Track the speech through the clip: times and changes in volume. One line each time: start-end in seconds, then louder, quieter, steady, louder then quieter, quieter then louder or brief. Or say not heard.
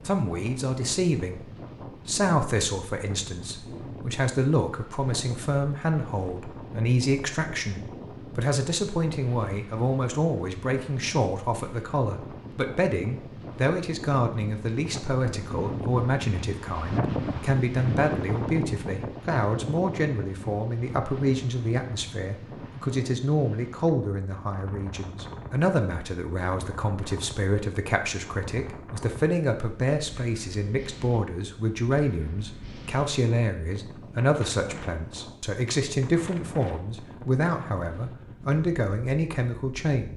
0.1-40.1 steady.